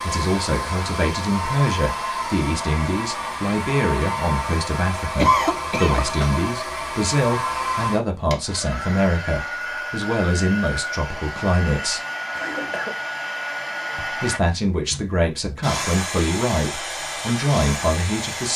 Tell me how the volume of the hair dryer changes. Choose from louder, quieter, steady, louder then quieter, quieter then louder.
steady.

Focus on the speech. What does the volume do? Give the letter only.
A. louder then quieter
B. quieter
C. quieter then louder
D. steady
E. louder
D.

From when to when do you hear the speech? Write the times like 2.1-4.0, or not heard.
0.0-12.0, 13.9-18.5.